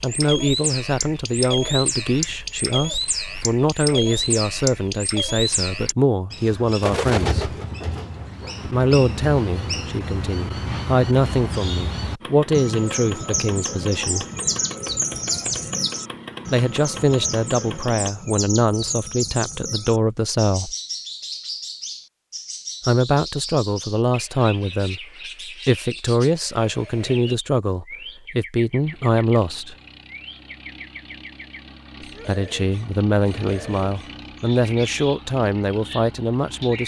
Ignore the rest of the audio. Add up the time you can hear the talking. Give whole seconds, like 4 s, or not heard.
29 s.